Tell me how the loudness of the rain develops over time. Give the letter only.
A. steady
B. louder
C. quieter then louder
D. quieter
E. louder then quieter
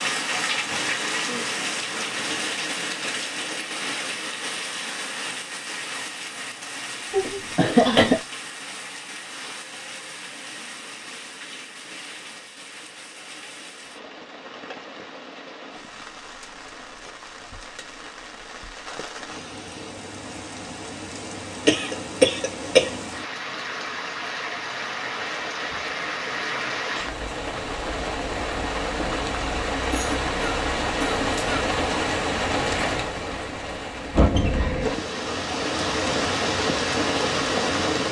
C.